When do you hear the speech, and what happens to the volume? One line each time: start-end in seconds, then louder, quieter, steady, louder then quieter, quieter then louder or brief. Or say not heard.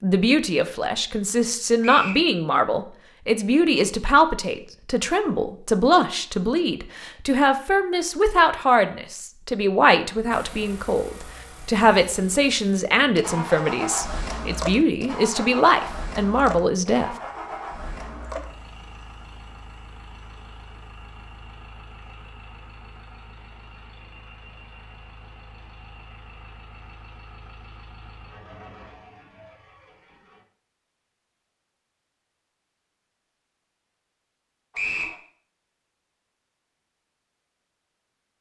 0.0-17.1 steady.